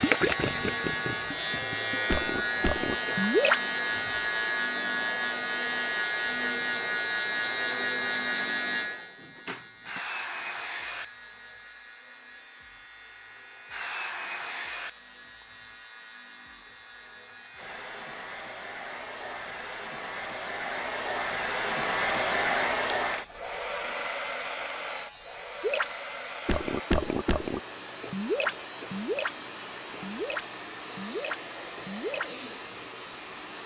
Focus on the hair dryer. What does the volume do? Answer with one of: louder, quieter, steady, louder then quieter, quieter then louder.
louder then quieter.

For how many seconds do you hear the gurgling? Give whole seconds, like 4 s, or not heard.
10 s.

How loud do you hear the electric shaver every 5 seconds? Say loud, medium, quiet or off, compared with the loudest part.
loud, loud, quiet, quiet, quiet, quiet, quiet.